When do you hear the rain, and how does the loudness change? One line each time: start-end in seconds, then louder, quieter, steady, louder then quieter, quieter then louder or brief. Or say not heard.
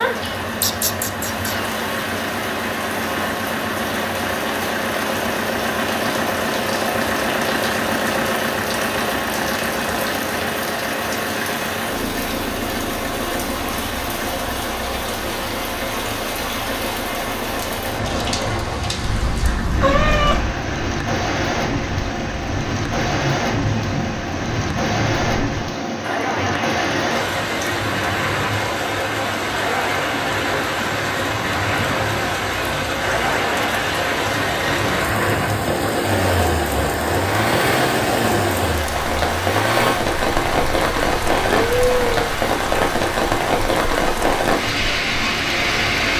0.0-46.1 louder.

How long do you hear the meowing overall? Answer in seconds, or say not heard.
4 s.